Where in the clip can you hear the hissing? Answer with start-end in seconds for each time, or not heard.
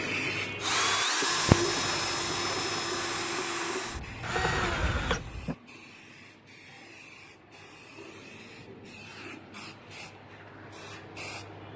0.0-11.7.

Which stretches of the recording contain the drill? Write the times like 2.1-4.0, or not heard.
0.0-5.5.